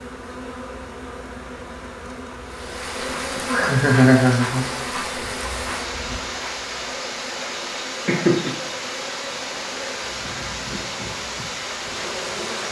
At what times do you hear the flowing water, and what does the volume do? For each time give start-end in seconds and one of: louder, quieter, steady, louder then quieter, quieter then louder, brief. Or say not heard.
2.5-12.6 steady.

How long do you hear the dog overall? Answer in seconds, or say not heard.
not heard.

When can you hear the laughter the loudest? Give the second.
4 s.